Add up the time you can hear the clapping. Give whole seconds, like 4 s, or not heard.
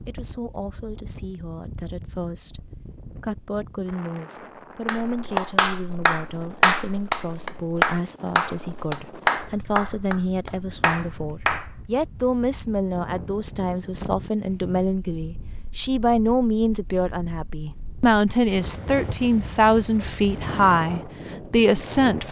7 s.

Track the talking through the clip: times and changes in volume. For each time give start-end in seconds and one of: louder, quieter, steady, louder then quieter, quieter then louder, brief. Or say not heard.
0.1-22.2 louder.